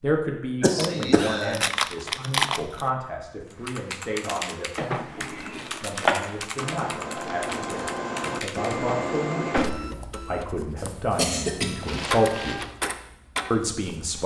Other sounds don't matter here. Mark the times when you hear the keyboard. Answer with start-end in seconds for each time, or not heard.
3.5-8.8.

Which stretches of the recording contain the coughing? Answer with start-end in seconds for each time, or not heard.
0.6-1.7, 5.2-6.2, 10.8-12.1.